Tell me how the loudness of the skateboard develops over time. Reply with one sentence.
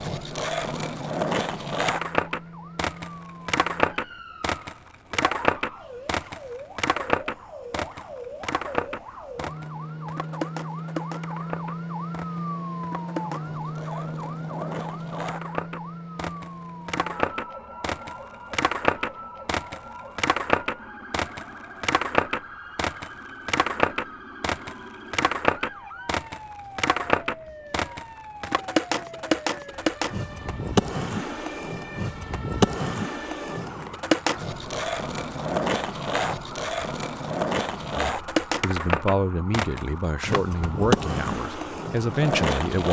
The volume of the skateboard goes down, then up.